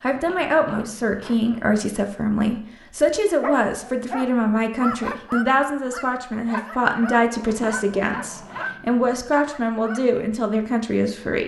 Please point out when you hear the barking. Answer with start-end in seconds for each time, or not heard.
3.4-10.2.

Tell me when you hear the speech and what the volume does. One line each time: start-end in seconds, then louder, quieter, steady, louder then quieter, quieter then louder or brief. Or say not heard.
0.0-11.4 steady.